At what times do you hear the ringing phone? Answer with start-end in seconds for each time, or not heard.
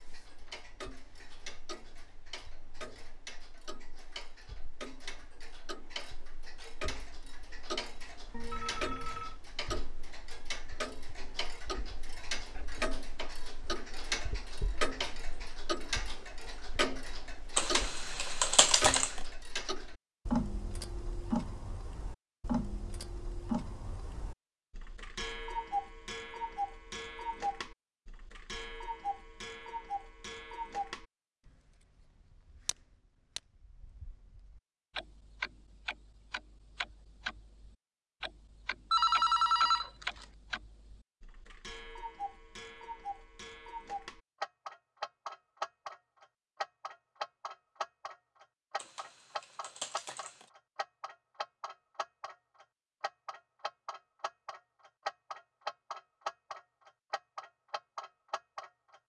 8.3-9.4, 38.9-40.2.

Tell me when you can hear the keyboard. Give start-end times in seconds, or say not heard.
17.6-19.2, 48.8-50.5.